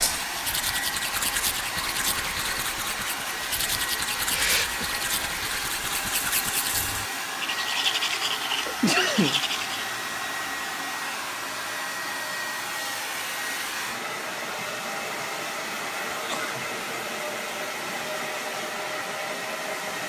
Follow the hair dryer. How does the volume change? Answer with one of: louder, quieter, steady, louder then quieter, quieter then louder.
steady.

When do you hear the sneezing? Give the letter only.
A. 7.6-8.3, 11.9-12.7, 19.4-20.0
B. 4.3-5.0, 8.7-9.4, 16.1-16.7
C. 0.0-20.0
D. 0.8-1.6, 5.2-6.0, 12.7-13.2
B.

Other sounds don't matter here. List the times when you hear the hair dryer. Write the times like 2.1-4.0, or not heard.
0.0-20.0.